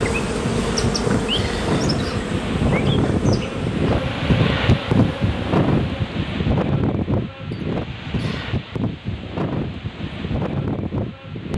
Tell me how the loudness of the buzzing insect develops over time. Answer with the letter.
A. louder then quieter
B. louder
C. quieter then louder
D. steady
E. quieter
E.